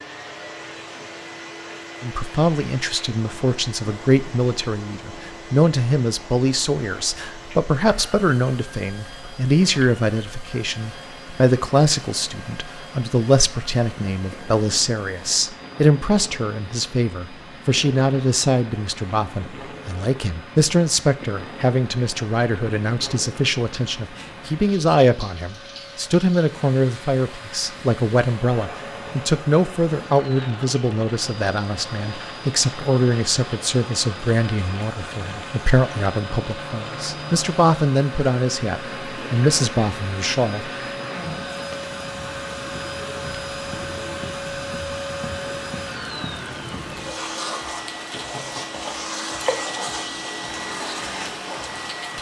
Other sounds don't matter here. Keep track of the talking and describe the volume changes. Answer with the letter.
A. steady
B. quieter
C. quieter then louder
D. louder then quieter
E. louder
A.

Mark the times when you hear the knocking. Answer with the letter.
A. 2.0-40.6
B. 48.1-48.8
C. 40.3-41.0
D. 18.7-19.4
B.